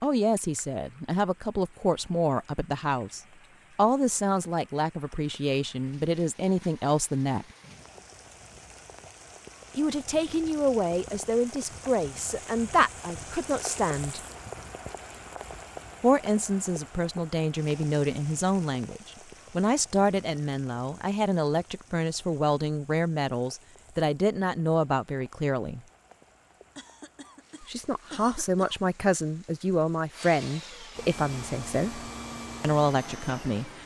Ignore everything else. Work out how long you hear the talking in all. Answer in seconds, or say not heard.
28 s.